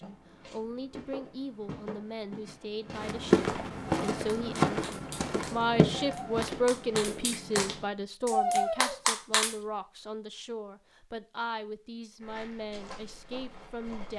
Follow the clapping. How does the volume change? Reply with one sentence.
The loudness of the clapping goes up.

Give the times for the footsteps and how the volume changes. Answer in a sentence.
The footsteps can be heard from 0.0 to 7.8 s, getting louder then quieter; and briefly from 12.2 to 14.1 s.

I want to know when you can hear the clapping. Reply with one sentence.
The clapping can be heard from 4.1 to 9.6 s.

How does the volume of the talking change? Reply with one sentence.
The volume of the talking goes up, then down.